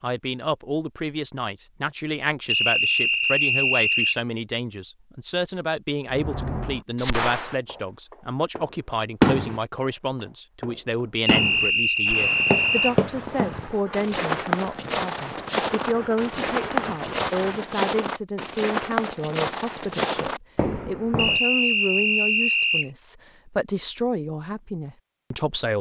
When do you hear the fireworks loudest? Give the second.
9 s.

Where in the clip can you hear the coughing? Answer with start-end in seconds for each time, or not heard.
not heard.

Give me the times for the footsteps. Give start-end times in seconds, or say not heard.
11.5-21.4.